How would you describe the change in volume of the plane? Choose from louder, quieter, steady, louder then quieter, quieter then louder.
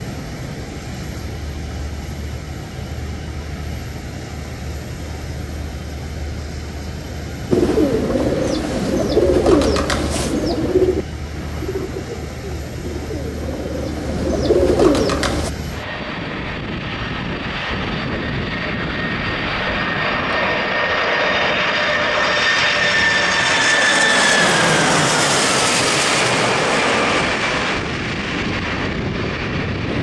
louder.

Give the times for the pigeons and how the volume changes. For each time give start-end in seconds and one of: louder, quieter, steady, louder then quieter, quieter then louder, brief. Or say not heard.
7.5-15.5 quieter then louder.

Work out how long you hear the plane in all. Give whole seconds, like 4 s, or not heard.
30 s.